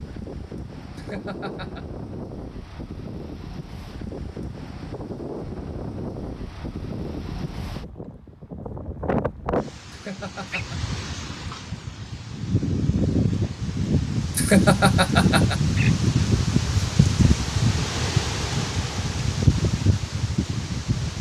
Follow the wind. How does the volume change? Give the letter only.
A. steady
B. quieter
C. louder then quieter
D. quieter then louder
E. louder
E.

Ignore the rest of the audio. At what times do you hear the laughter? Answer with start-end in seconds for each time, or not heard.
0.9-1.9, 9.9-10.8, 14.3-15.6.